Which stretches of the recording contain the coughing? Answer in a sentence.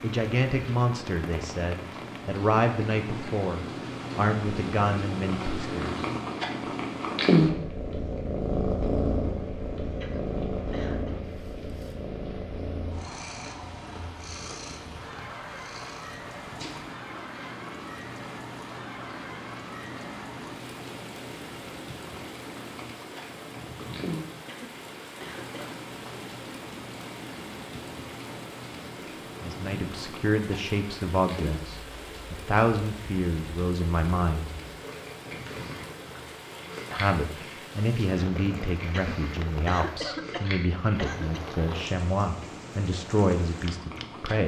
You can hear the coughing from 10.0 to 11.2 s, from 24.4 to 25.8 s and from 38.9 to 41.5 s.